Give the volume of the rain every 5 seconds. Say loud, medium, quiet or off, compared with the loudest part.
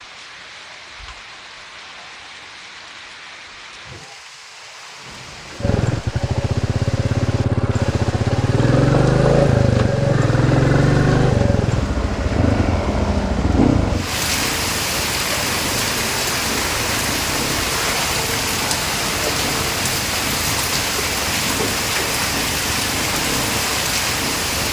quiet, quiet, medium, loud, loud.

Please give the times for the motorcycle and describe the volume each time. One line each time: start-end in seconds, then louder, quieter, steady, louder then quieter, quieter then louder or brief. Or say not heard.
5.6-24.6 quieter.